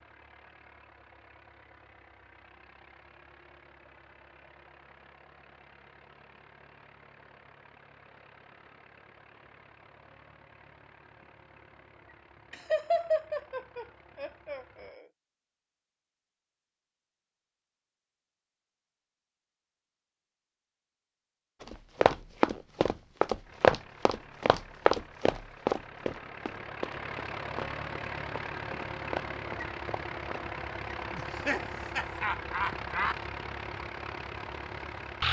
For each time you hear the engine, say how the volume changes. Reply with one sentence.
The engine can be heard from 0.0 to 15.0 s, at a steady volume; and from 23.4 to 35.2 s, getting louder.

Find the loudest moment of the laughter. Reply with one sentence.
The loudest moment of the laughter is at 13 seconds.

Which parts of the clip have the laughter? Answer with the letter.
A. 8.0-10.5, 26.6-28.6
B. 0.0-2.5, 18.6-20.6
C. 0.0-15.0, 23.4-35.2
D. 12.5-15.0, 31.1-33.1
D.